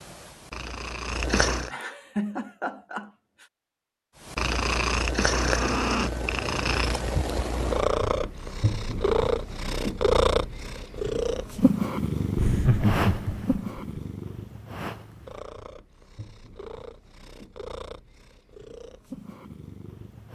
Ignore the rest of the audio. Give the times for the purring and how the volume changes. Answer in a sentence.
You can hear the purring briefly from 0.0 to 1.7 s; and from 4.2 to 20.3 s, getting quieter.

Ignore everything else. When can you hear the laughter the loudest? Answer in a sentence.
The loudest moment of the laughter is at 13 seconds.